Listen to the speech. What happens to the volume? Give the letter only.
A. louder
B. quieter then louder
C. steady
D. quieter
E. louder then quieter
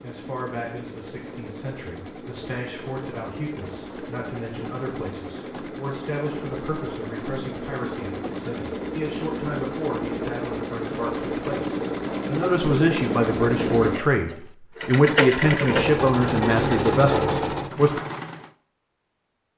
A.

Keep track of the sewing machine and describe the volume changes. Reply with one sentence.
The loudness of the sewing machine goes up.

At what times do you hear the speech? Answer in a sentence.
You can hear the speech from 0.0 to 18.0 s.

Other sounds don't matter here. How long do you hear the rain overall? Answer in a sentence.
The rain can't be heard in this clip.